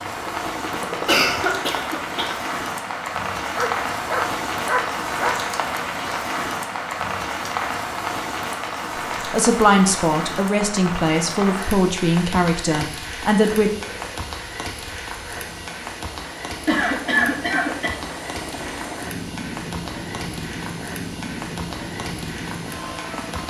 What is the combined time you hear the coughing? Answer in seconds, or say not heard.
3 s.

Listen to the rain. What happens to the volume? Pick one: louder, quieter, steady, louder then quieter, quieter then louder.
quieter.